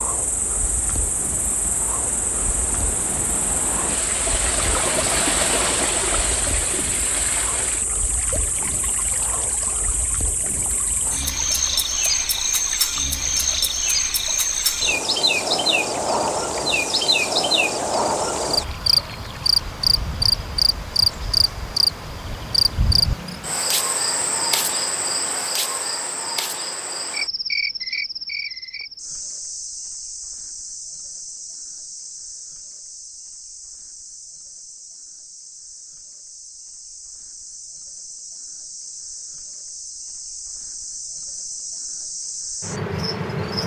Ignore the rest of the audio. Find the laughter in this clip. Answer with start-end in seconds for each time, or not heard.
not heard.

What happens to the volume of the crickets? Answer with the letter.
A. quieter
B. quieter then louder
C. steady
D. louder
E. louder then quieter
E.